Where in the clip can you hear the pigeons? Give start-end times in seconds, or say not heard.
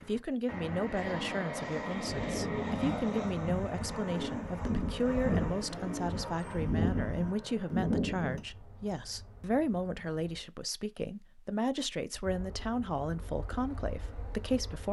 2.0-8.4.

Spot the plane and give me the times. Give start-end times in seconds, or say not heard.
0.0-10.4, 12.2-14.8.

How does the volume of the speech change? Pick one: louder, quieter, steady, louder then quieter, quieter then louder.
steady.